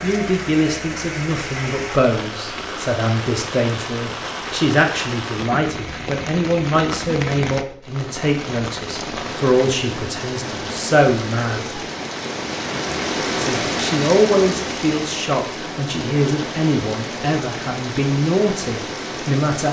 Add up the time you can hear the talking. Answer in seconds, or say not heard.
18 s.